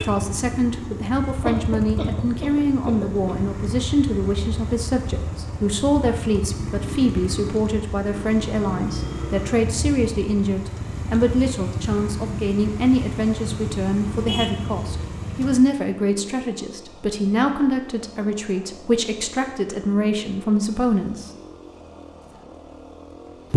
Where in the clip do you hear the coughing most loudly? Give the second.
2 s.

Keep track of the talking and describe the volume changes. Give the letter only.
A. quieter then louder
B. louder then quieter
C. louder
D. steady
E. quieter
D.